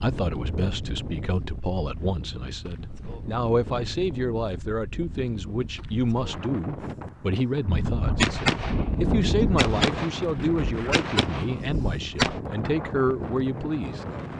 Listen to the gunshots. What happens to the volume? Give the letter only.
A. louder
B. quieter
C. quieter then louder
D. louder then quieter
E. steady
B.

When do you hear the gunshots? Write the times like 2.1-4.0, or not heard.
7.7-12.4.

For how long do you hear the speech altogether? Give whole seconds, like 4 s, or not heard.
14 s.